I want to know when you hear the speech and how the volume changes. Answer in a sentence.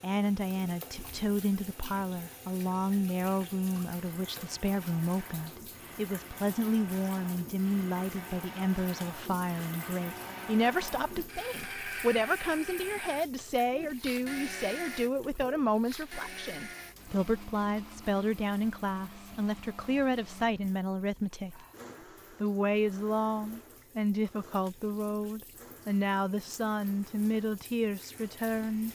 You can hear the speech from 0.0 to 21.6 s, at a steady volume; and from 22.4 to 28.9 s, at a steady volume.